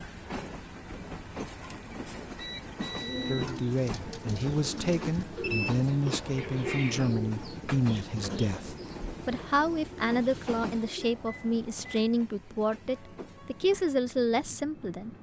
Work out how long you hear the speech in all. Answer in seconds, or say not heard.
12 s.